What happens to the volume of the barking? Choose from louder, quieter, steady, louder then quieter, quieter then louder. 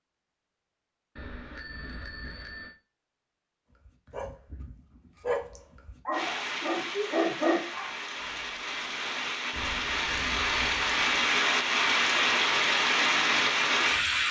louder.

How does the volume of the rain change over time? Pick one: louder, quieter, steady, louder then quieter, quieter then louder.
louder.